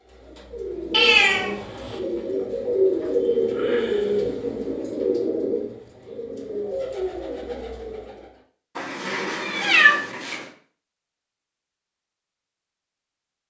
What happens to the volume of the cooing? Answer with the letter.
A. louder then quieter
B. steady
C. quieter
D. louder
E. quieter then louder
A.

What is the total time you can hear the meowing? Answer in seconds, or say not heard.
3 s.